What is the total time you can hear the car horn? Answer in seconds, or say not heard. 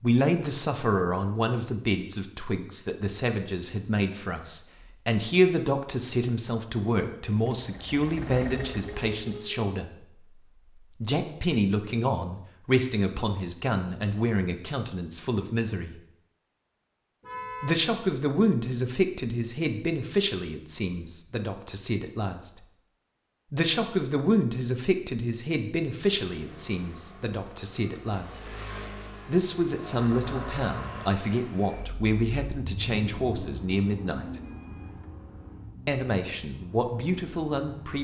2 s.